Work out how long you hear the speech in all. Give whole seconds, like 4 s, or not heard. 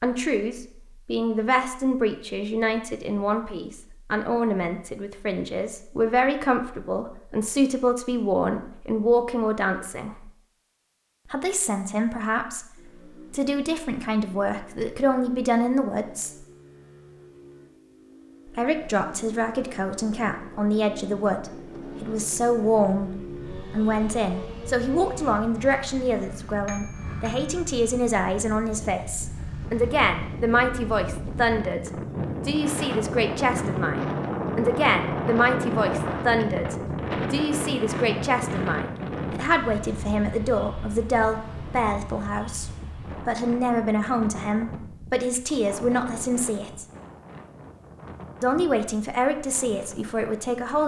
45 s.